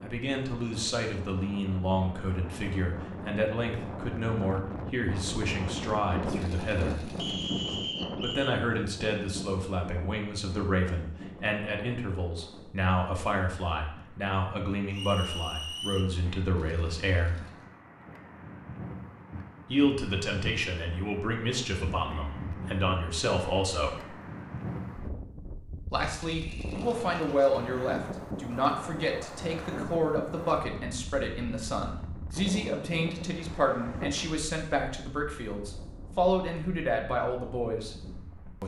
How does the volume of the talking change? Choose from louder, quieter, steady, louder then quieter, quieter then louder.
steady.